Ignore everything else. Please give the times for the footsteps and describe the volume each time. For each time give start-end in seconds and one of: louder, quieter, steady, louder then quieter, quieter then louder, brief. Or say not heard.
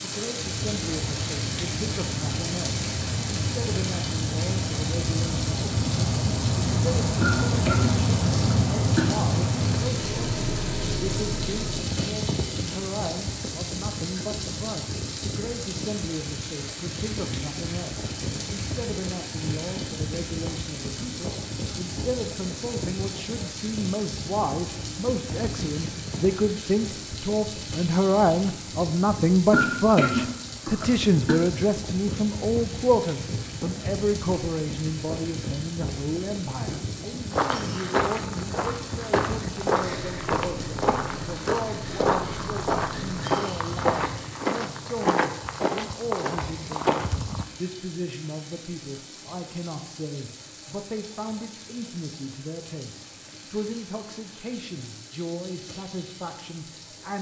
37.3-47.5 steady.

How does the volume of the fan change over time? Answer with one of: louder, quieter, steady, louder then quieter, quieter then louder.
quieter.